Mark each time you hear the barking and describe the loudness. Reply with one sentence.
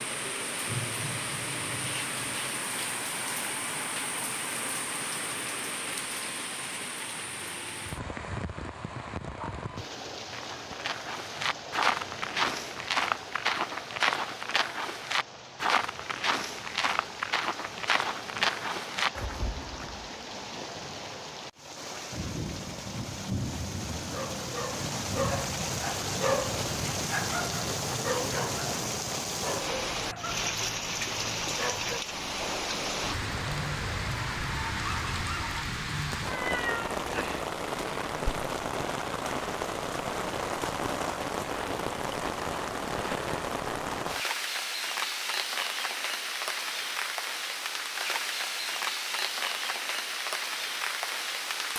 The barking can be heard from 24.1 to 35.6 s, getting quieter.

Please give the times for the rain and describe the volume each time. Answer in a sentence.
The rain can be heard from 0.0 to 51.7 s, getting quieter then louder.